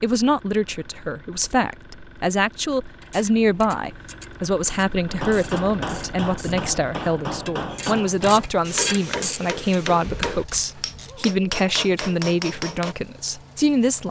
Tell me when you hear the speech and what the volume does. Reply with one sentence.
The speech can be heard from 0.0 to 14.0 s, at a steady volume.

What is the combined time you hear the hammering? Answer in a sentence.
You can hear the hammering for 8 seconds altogether.